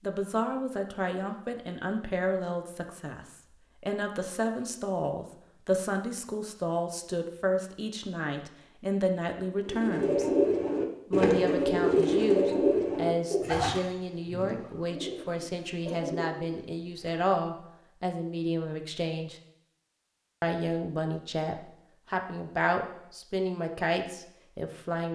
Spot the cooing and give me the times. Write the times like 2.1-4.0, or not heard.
9.7-17.1.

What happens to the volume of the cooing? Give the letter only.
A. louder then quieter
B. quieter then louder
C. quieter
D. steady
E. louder
C.